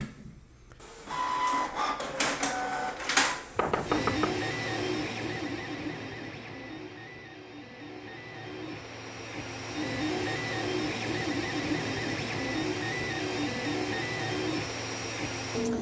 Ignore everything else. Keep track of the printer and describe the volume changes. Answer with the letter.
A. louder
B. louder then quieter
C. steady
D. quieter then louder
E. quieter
D.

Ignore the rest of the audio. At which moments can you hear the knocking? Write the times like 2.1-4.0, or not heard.
3.5-4.3.